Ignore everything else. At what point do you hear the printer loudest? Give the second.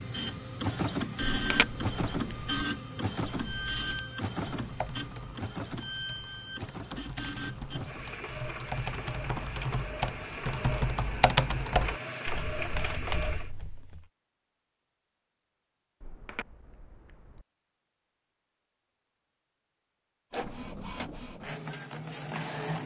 1 s.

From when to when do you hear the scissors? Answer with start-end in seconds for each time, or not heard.
1.3-2.6, 16.0-17.4.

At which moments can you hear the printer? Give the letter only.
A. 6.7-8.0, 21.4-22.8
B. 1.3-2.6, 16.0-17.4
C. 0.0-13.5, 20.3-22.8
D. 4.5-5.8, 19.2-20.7
C.